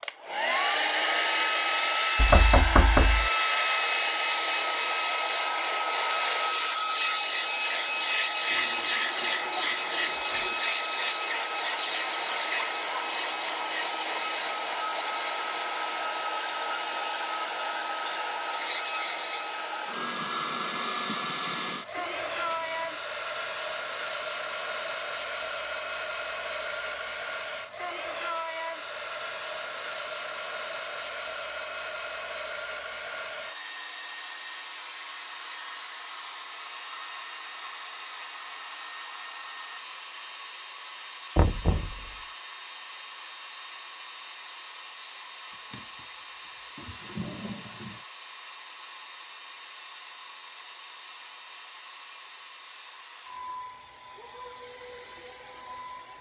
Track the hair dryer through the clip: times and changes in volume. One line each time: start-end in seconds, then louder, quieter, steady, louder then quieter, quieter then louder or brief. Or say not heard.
0.0-56.1 quieter.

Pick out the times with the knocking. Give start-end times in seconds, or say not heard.
2.1-3.3, 41.4-42.0.